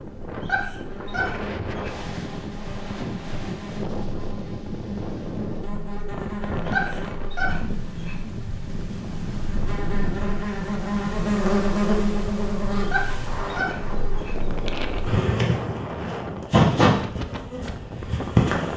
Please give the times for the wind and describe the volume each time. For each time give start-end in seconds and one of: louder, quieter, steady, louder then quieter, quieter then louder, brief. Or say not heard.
0.0-18.7 steady.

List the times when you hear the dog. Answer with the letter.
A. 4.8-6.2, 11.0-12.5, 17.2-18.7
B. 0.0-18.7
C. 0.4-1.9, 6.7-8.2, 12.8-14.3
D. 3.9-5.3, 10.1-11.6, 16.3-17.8
C.